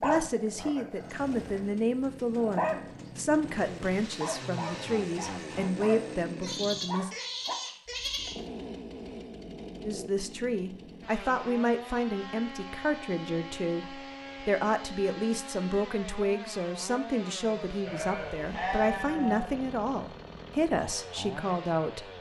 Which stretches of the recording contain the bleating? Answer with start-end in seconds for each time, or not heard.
6.4-8.4, 17.9-19.6.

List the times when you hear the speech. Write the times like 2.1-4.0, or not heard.
0.0-7.2, 9.8-22.1.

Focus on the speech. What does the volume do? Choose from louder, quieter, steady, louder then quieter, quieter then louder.
steady.